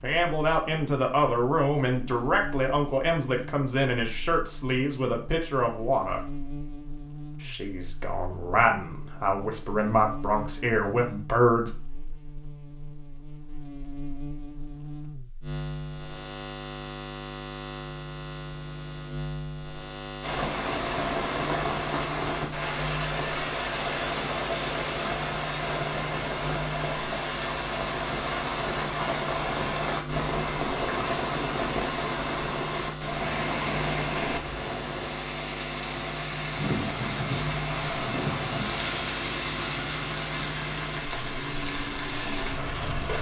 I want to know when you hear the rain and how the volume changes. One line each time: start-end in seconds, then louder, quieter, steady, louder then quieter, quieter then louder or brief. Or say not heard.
20.2-43.1 steady.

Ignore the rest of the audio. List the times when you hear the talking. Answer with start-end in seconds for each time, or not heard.
0.0-6.2, 7.4-11.7.